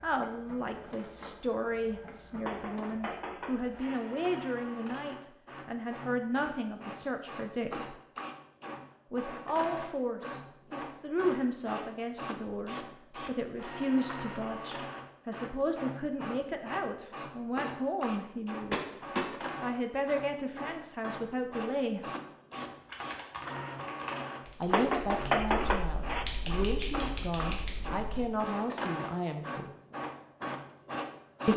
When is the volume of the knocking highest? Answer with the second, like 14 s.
25 s.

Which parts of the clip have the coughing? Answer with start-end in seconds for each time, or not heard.
not heard.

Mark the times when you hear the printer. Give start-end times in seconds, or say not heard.
0.0-31.5.